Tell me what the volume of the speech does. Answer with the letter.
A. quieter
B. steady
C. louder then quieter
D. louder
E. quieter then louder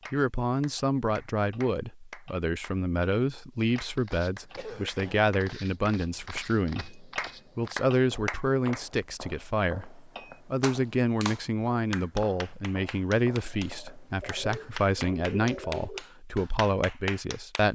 B.